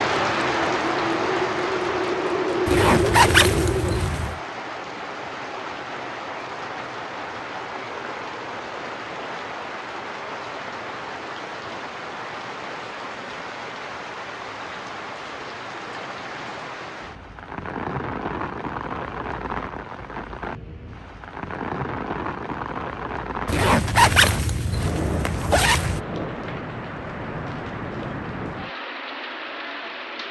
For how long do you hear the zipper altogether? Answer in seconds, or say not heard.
4 s.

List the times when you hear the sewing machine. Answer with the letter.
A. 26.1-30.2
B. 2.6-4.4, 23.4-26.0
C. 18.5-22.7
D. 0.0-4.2
D.